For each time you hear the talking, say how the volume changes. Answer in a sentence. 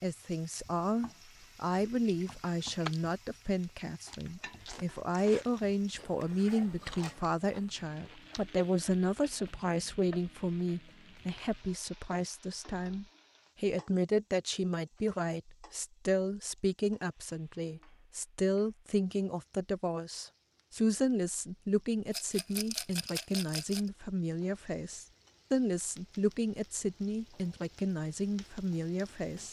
The talking can be heard from 0.0 to 29.4 s, at a steady volume.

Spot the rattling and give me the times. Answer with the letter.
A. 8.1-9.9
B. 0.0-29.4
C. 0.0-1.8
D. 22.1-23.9
D.